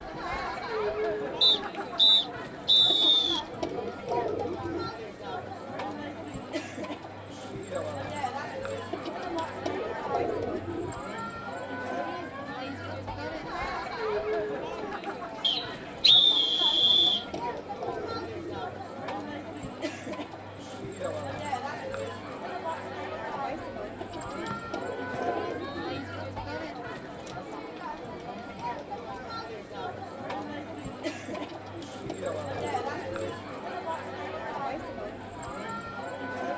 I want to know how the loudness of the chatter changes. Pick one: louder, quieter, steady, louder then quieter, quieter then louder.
steady.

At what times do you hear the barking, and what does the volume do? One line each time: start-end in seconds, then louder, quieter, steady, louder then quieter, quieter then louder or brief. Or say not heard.
not heard.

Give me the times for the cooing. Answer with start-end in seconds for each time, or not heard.
2.9-4.9, 8.9-10.9, 16.6-18.6, 24.0-26.0, 31.4-33.4.